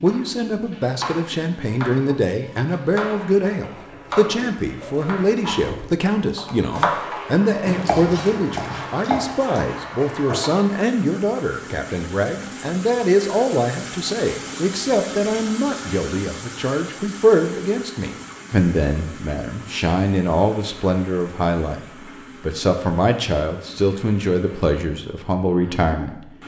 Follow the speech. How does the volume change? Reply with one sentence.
The volume of the speech stays about the same.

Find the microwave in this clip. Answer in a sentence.
You can't hear the microwave here.